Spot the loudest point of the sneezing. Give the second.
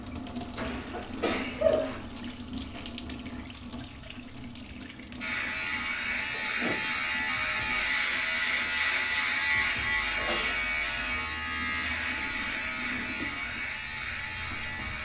2 s.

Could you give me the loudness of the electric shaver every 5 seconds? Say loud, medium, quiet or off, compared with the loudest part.
off, loud, loud.